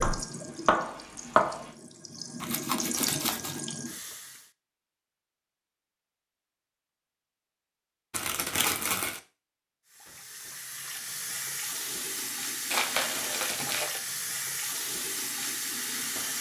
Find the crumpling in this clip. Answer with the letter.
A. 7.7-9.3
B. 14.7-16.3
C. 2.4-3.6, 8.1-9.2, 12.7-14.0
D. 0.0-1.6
C.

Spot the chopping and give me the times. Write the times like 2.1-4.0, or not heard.
0.0-1.6.